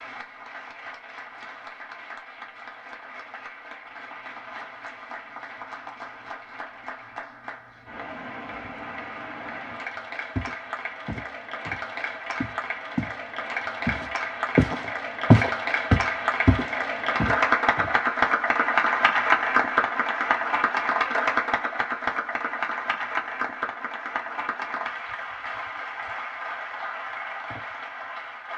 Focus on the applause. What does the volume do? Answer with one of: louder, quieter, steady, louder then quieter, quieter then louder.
louder then quieter.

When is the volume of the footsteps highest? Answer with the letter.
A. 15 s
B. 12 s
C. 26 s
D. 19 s
A.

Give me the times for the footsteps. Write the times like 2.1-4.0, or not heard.
10.3-13.2, 13.8-18.1.